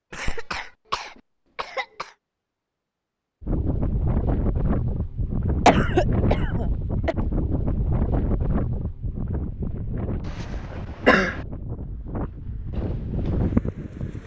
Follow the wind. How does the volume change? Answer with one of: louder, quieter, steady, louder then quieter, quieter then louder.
quieter then louder.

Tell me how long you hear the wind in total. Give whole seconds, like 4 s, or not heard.
11 s.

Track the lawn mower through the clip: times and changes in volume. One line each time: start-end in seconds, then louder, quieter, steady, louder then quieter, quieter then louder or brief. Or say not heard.
not heard.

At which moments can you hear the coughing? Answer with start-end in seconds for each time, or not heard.
0.1-2.1, 5.7-7.2, 10.2-11.4.